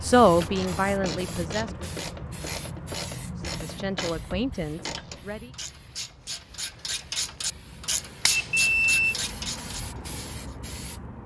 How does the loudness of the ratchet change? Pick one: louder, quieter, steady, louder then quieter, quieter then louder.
louder.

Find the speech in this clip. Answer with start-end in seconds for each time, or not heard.
0.0-1.9, 3.5-5.5.